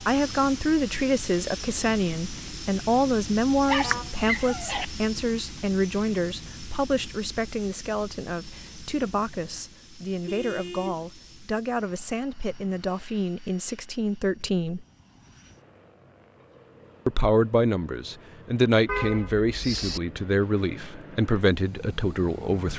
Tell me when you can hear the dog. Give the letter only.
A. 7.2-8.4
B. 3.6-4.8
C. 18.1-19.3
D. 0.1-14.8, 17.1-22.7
B.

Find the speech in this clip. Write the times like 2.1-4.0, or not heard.
0.1-14.8, 17.1-22.7.